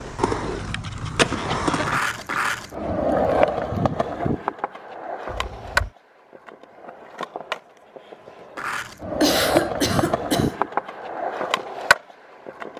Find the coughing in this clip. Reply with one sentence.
You can hear the coughing from 1.4 to 2.4 s, from 5.2 to 5.9 s and from 9.2 to 10.6 s.